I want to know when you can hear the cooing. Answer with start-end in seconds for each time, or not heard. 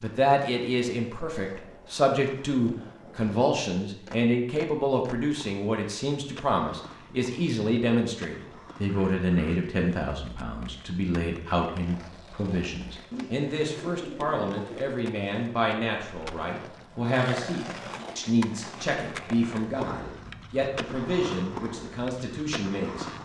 13.1-14.9.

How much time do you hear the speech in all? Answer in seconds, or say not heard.
23 s.